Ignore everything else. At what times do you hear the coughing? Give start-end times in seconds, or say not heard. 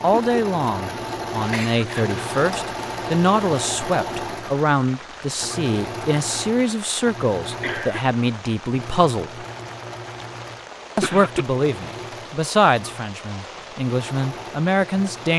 1.5-2.1, 7.6-8.2, 10.6-11.4.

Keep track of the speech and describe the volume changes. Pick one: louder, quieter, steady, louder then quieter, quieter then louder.
steady.